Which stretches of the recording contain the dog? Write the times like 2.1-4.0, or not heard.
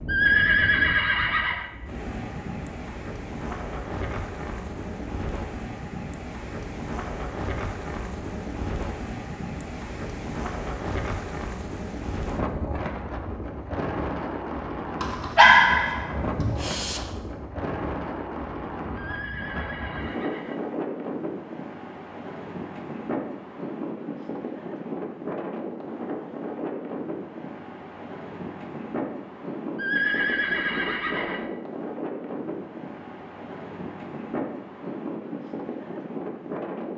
15.0-17.0.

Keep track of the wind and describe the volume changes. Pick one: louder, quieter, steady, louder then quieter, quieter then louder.
steady.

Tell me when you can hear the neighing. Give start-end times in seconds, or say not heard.
0.1-1.7, 18.9-20.6, 29.8-31.4.